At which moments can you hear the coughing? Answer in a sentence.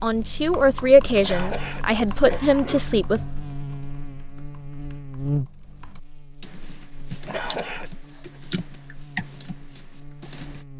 The coughing can be heard from 1.1 to 3.0 s and from 7.1 to 8.4 s.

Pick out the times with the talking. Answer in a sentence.
The talking can be heard from 0.0 to 3.2 s.